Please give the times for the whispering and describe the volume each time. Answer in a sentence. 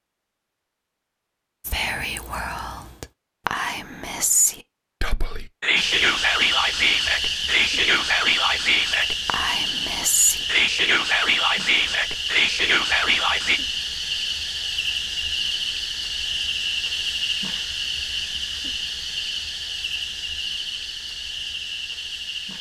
The whispering can be heard from 1.6 to 13.6 s, getting louder.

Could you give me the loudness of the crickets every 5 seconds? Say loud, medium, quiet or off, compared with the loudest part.
off, loud, loud, loud, medium.